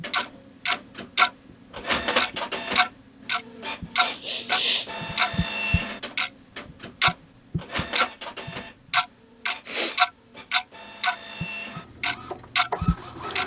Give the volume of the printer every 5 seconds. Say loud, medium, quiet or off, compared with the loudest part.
loud, loud, medium.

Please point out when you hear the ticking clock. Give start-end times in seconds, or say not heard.
0.0-1.3, 2.1-13.4.